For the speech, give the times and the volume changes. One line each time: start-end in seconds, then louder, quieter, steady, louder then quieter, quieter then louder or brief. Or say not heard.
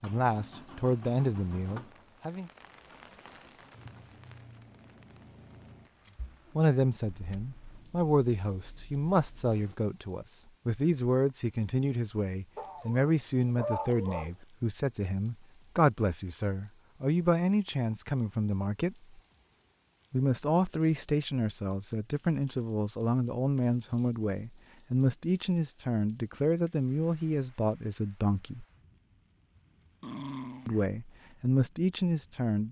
0.0-2.5 brief
6.5-18.9 steady
20.1-28.6 steady
30.6-32.6 brief.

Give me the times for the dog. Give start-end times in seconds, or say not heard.
12.6-14.3, 30.0-30.9.